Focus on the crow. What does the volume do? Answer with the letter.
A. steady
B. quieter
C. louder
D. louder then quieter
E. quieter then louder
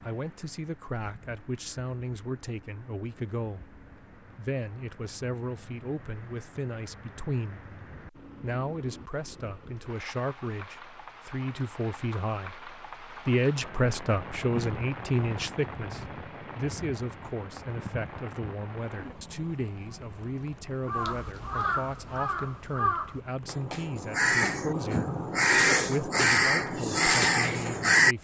C.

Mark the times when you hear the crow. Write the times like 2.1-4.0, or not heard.
20.9-28.1.